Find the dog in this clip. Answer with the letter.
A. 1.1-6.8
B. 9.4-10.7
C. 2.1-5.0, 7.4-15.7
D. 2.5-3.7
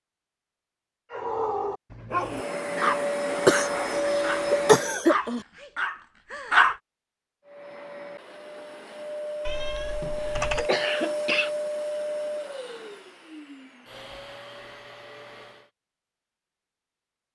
A.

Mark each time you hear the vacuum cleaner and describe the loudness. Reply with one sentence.
You can hear the vacuum cleaner briefly from 2.1 to 5.0 s; and from 7.4 to 15.7 s, getting louder then quieter.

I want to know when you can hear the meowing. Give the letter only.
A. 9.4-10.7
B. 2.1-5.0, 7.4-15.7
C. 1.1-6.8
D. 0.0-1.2
A.